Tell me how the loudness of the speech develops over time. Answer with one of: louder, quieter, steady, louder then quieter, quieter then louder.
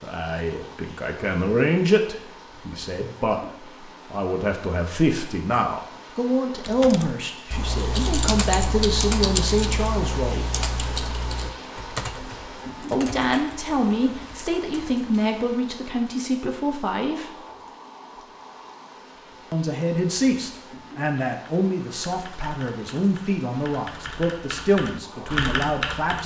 steady.